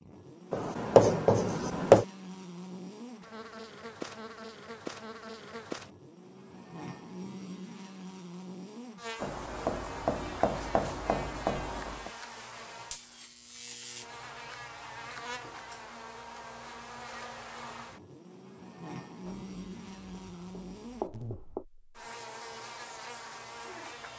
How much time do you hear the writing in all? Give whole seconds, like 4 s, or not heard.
7 s.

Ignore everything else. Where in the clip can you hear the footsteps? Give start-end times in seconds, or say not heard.
not heard.